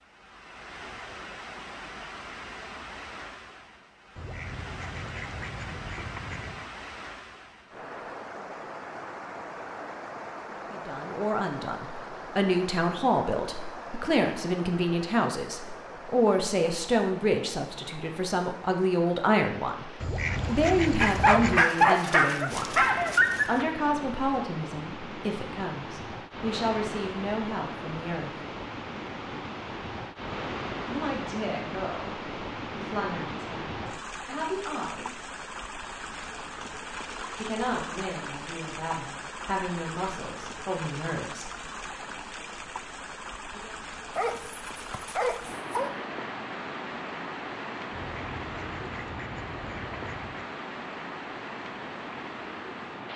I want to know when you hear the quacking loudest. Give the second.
21 s.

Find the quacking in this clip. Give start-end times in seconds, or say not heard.
4.2-6.7, 20.0-21.6, 47.9-50.5.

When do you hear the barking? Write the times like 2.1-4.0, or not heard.
21.0-23.6, 44.1-45.9.